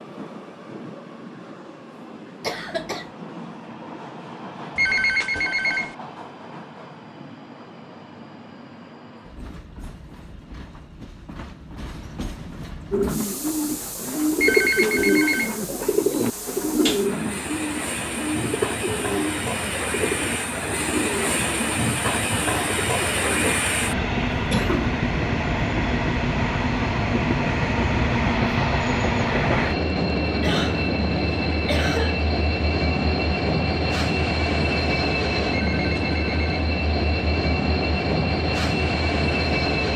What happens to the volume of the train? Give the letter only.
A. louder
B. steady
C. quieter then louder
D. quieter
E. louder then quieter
A.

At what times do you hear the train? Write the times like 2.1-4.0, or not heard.
0.0-39.9.